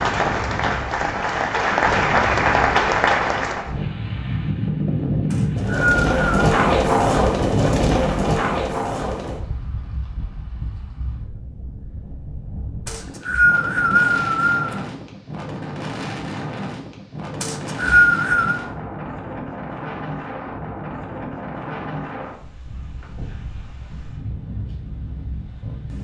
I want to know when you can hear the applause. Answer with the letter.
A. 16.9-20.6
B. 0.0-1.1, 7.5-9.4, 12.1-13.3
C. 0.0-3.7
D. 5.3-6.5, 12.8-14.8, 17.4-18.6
C.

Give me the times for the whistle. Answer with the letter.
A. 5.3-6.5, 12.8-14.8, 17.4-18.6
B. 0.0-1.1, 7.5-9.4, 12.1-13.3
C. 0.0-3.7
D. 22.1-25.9
A.